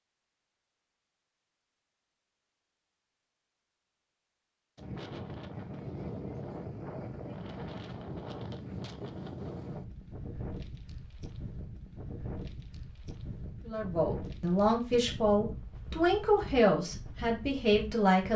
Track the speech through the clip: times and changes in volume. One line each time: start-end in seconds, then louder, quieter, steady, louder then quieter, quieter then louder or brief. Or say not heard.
13.7-18.3 steady.